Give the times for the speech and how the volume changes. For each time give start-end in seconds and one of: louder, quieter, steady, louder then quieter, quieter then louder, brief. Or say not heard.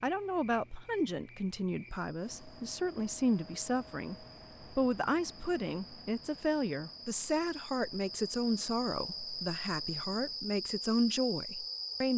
0.0-12.1 steady.